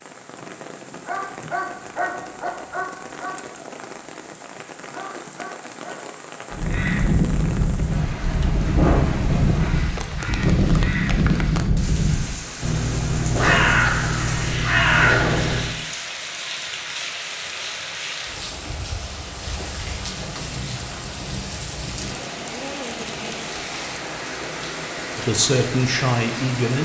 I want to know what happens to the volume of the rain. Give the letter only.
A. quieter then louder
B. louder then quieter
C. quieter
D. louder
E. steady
D.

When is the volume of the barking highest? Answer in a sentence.
The loudest moment of the barking is at 2 seconds.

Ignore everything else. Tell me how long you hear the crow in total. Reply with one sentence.
The crow can be heard for 9 seconds in total.